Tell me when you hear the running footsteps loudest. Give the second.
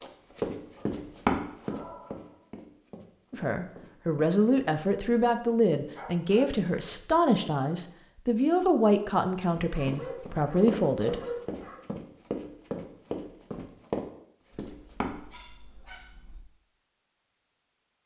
1 s.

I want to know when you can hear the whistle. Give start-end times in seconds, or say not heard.
not heard.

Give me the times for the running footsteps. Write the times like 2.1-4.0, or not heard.
0.0-4.8, 9.5-15.2.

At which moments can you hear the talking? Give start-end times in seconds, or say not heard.
3.3-11.2.